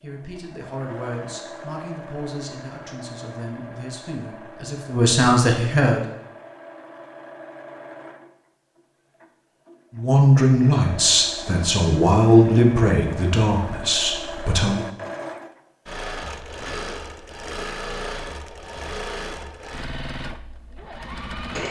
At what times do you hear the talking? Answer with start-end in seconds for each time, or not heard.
0.0-6.0, 9.9-14.8.